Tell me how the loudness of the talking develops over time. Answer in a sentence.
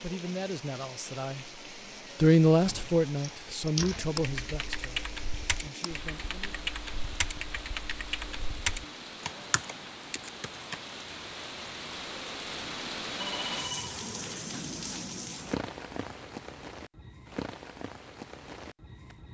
The loudness of the talking goes up, then down.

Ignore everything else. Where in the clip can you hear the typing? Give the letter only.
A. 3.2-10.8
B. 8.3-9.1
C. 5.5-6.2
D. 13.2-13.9
A.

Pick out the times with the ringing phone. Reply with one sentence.
You can hear the ringing phone from 13.2 to 13.9 s.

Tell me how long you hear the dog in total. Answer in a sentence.
You can't hear the dog here.